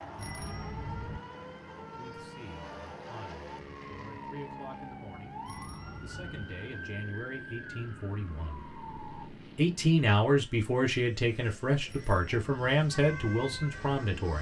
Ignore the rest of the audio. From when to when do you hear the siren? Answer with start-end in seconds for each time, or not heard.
0.0-9.3, 12.8-14.3.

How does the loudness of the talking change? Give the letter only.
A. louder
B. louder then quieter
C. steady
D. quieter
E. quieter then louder
A.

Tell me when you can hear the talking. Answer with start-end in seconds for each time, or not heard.
1.9-8.7, 9.6-14.3.